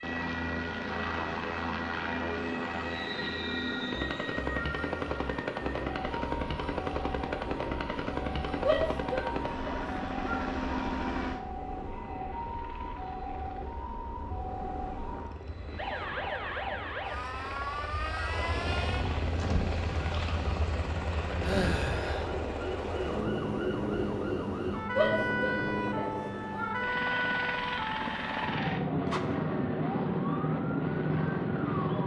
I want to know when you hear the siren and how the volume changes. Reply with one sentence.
The siren can be heard from 0.0 to 32.0 s, getting louder.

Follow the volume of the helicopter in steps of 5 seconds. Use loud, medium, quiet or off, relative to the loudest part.
loud, loud, medium, medium, loud, loud, loud.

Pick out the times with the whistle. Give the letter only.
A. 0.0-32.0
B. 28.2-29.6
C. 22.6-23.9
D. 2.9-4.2
D.